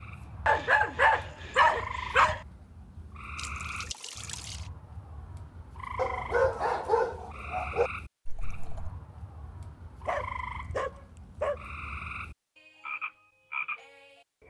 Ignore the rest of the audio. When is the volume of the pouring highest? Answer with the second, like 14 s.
4 s.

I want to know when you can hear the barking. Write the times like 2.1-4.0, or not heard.
0.5-2.4, 6.0-7.9, 10.1-11.7.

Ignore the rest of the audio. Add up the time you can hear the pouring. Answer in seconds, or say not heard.
2 s.